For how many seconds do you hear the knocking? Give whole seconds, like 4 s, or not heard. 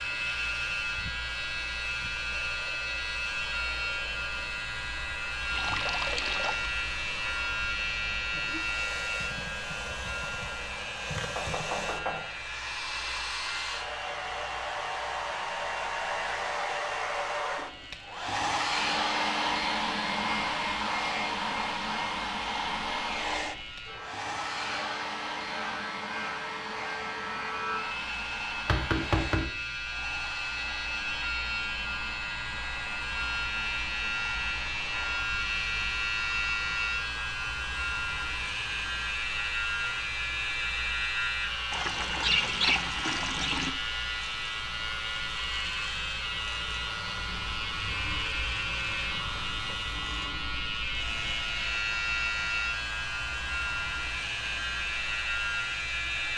2 s.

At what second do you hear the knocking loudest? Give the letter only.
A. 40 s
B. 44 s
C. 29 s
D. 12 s
C.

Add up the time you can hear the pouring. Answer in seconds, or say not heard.
3 s.